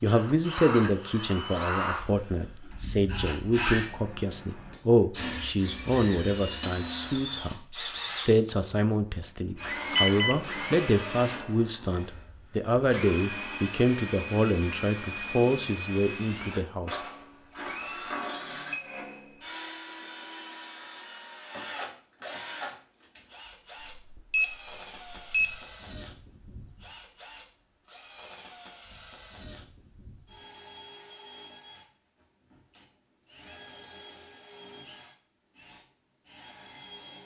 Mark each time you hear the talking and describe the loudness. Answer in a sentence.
The talking can be heard from 0.0 to 17.0 s, at a steady volume.